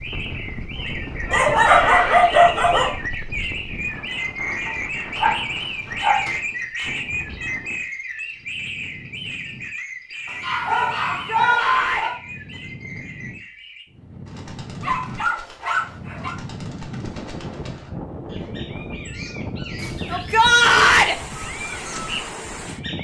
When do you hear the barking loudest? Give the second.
2 s.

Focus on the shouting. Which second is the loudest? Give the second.
21 s.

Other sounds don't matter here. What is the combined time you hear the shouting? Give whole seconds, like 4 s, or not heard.
3 s.